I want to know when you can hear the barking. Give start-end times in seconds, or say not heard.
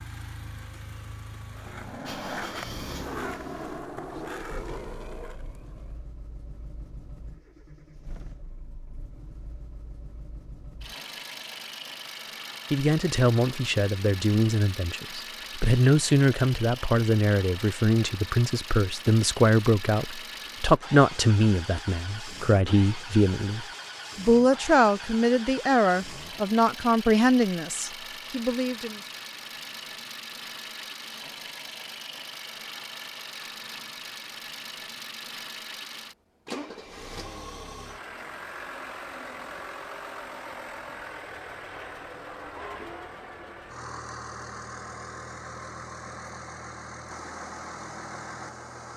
not heard.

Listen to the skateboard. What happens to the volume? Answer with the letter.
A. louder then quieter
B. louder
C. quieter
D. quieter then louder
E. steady
C.